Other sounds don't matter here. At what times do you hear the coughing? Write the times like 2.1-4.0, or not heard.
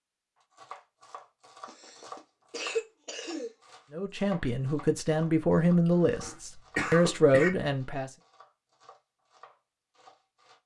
1.6-3.5, 6.2-7.5.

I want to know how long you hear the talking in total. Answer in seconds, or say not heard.
4 s.